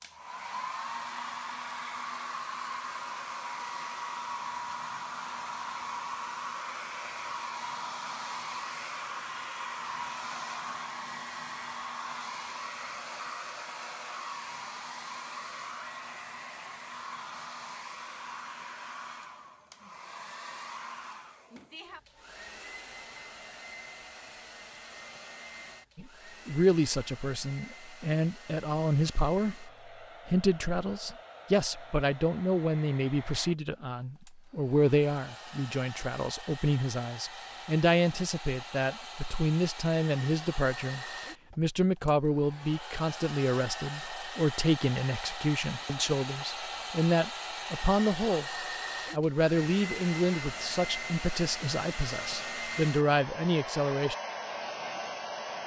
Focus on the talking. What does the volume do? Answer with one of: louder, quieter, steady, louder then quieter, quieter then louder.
steady.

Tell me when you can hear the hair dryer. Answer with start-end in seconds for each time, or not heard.
0.0-55.6.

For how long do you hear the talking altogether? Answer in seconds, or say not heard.
28 s.